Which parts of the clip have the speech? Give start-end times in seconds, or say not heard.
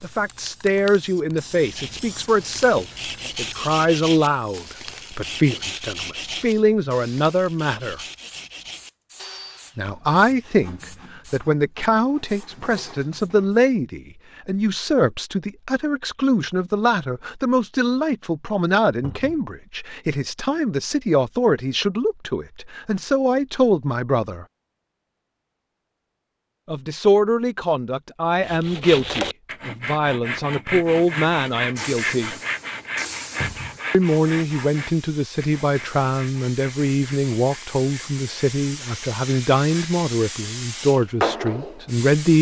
0.0-8.0, 9.8-24.4, 26.6-32.4, 33.9-42.3.